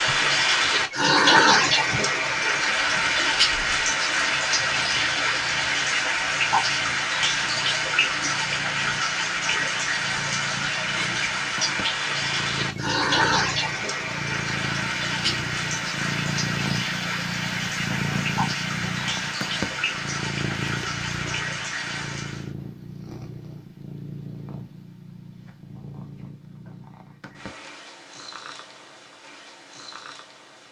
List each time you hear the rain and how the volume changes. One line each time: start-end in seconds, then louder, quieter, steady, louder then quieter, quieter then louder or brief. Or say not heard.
0.0-22.5 quieter.